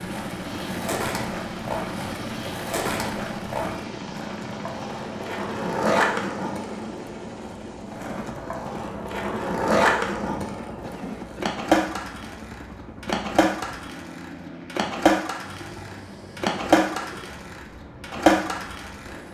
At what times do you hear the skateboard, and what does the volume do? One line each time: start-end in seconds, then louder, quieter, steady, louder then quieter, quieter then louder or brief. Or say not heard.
0.0-19.1 louder.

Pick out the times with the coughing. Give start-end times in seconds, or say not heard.
10.8-11.6.